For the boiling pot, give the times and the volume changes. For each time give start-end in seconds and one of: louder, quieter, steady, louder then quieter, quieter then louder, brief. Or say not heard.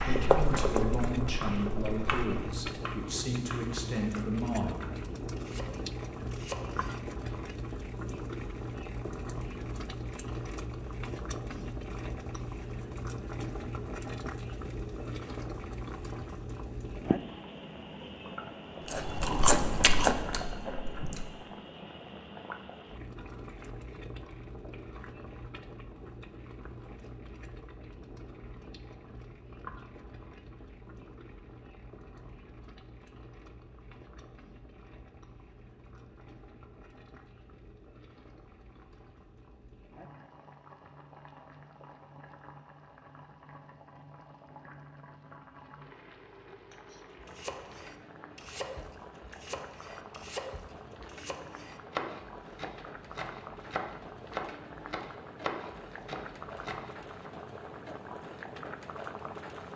0.0-59.7 quieter then louder.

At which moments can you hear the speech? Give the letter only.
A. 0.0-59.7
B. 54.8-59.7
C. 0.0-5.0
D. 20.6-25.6
C.